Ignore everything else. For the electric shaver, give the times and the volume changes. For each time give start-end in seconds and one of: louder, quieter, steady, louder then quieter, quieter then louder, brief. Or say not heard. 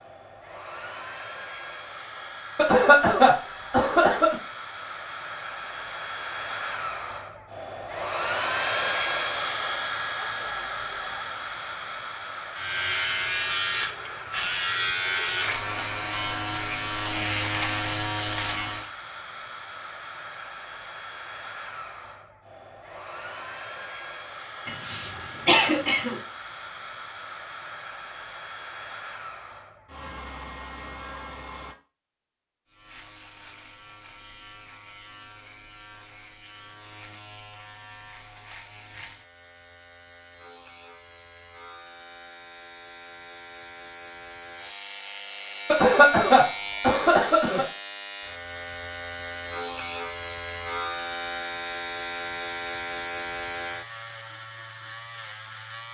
12.6-18.9 steady
32.7-55.8 louder.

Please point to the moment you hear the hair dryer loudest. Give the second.
9 s.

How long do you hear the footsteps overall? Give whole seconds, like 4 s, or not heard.
not heard.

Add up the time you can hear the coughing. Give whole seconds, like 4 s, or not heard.
5 s.